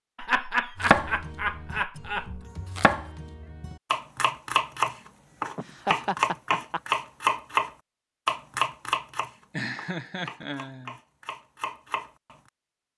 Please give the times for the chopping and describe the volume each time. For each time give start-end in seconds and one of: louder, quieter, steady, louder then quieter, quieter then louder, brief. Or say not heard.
0.8-12.3 louder then quieter.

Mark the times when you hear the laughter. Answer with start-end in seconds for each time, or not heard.
0.1-2.4, 5.5-6.8, 9.5-11.0.